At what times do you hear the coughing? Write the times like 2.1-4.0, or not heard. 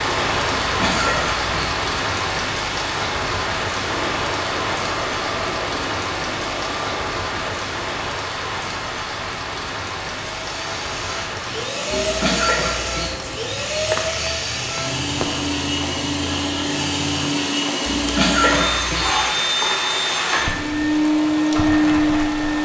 0.5-1.8, 11.9-13.2, 17.9-19.1.